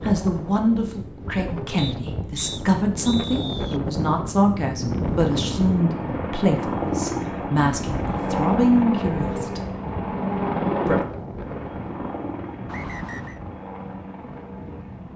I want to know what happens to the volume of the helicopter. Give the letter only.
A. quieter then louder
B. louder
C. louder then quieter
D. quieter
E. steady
D.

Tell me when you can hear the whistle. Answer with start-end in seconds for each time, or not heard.
1.8-3.8, 12.7-13.4.